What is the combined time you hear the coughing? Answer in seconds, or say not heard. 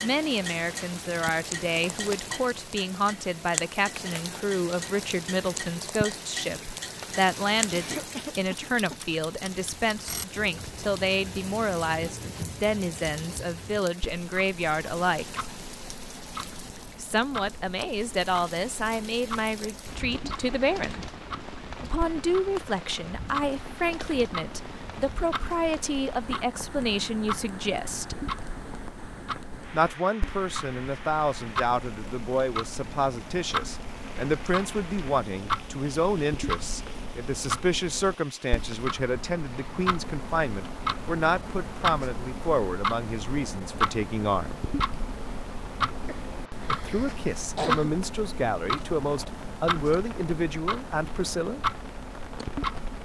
3 s.